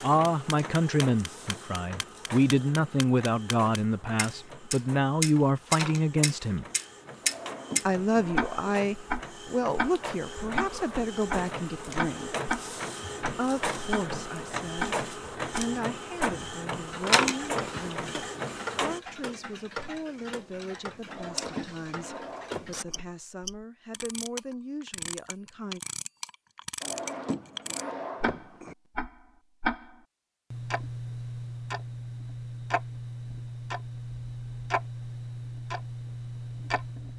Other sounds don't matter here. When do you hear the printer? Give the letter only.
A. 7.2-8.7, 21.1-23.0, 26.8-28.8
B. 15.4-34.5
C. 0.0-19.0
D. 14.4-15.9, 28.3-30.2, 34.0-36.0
C.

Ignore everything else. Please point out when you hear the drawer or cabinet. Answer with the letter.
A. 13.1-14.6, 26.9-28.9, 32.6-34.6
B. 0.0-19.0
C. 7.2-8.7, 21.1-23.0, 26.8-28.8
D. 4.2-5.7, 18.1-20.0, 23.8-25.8
C.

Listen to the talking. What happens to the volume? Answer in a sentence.
The loudness of the talking goes down.